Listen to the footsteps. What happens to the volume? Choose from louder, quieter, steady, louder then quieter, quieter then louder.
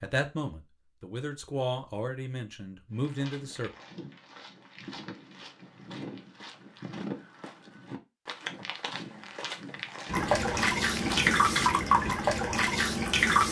louder.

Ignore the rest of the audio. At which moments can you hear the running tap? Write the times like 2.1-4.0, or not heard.
10.1-13.4.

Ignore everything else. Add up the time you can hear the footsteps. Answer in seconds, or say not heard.
9 s.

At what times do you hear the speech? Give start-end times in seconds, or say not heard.
0.0-3.7.